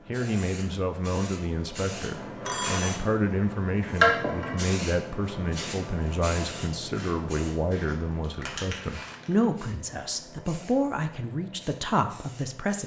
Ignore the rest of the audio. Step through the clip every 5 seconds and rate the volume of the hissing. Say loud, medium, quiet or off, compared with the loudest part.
loud, medium, quiet.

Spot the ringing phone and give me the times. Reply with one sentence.
You can hear the ringing phone from 2.5 to 3.0 s.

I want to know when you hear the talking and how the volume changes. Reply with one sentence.
You can hear the talking from 0.1 to 12.8 s, at a steady volume.